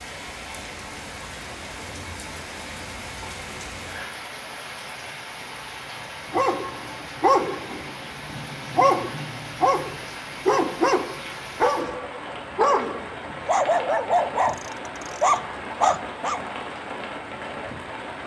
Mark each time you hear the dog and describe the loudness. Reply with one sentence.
You can hear the dog from 6.3 to 16.4 s, at a steady volume.